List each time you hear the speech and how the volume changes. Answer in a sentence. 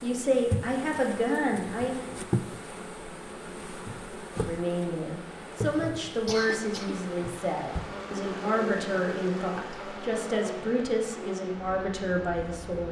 You can hear the speech briefly from 0.0 to 2.0 s; and from 4.3 to 12.8 s, at a steady volume.